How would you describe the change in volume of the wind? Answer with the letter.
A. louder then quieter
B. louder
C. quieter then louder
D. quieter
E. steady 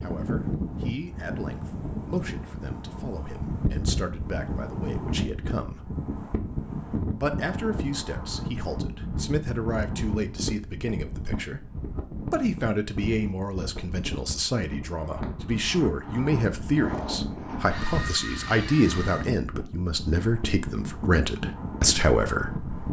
E.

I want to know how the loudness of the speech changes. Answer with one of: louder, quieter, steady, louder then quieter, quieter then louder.
louder.